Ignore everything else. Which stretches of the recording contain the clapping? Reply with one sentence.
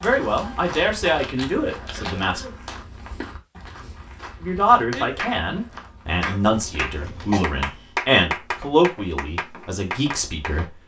The clapping can be heard from 0.0 to 2.8 s and from 4.9 to 10.6 s.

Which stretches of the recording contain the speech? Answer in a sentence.
The speech can be heard from 0.0 to 2.4 s and from 4.4 to 10.8 s.